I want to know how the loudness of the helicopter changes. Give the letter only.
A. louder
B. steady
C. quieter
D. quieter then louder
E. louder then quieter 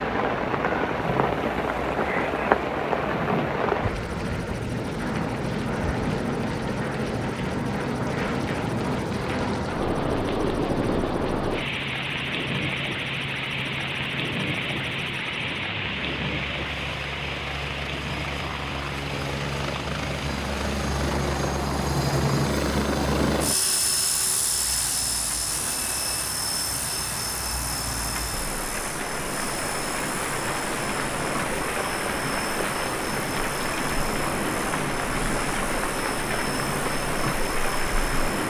E.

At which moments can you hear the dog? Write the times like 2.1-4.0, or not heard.
not heard.